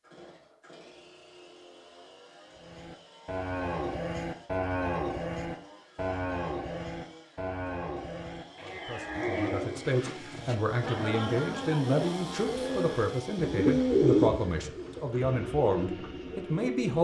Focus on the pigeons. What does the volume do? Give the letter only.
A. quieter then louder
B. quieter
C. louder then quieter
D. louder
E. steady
C.